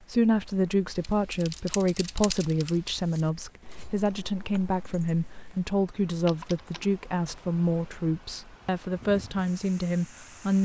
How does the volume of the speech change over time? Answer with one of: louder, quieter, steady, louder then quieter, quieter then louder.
steady.